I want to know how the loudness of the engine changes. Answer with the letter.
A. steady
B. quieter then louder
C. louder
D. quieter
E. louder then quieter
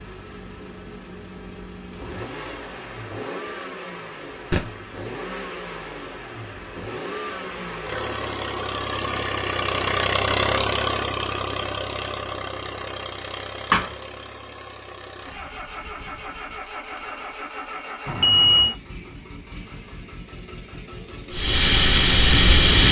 E.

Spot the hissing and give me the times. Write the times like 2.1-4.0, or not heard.
21.3-22.8.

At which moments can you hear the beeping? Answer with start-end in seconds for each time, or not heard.
18.1-18.7.